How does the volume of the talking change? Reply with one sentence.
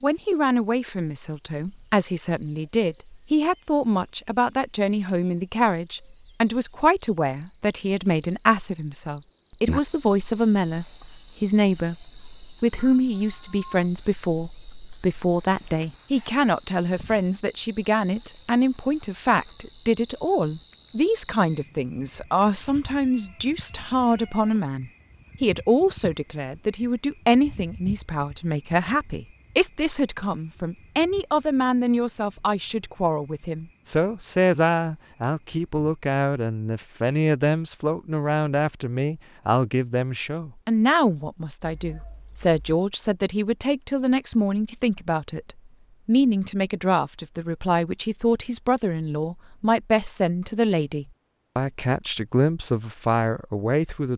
The loudness of the talking stays about the same.